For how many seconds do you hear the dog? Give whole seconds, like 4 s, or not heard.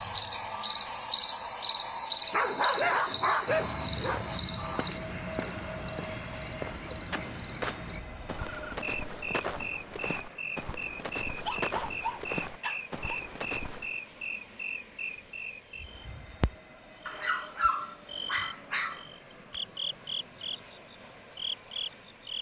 6 s.